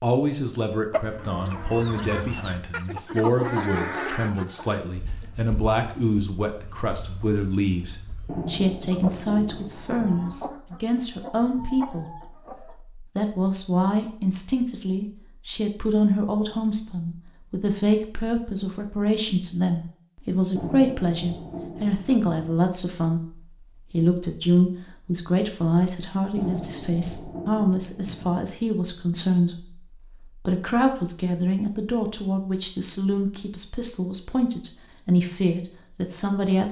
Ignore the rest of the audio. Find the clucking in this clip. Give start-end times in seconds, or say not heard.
0.9-12.8.